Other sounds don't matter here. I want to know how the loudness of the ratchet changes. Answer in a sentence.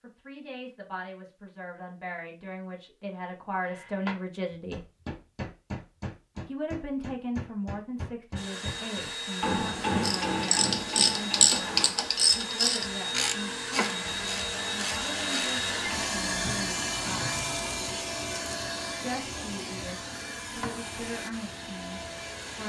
The loudness of the ratchet goes down.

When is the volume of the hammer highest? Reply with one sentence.
The loudest moment of the hammer is at 10 seconds.